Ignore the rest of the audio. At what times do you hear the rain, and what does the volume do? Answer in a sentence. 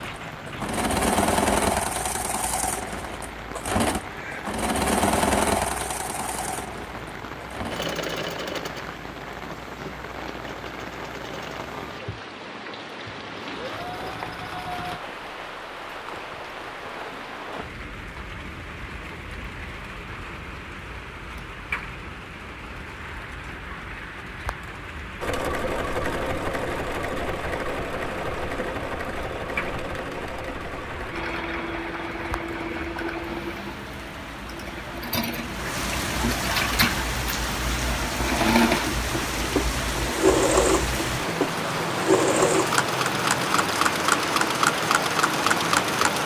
The rain can be heard from 0.0 to 46.2 s, getting louder.